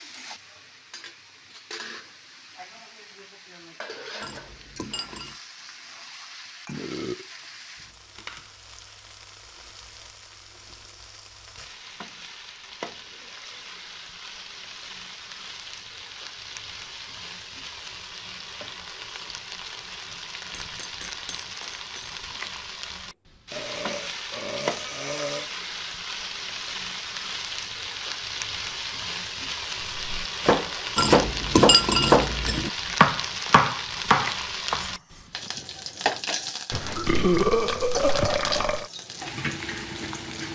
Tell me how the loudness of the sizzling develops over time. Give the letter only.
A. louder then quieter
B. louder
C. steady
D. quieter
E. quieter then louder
B.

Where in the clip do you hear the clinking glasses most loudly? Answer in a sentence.
The volume of the clinking glasses peaks at 32 seconds.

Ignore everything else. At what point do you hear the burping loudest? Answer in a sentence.
The loudest moment of the burping is at 37 seconds.